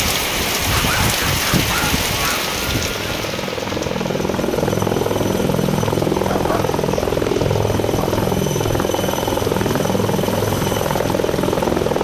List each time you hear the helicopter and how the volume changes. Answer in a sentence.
The helicopter can be heard from 0.0 to 11.9 s, getting louder.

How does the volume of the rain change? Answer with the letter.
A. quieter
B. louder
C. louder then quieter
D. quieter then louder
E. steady
A.